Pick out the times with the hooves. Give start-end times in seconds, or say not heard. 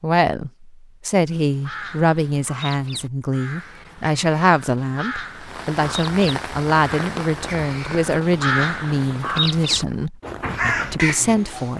not heard.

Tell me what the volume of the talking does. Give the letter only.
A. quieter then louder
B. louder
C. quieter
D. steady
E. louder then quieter
D.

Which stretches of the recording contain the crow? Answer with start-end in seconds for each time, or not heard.
1.3-11.7.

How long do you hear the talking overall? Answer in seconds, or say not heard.
12 s.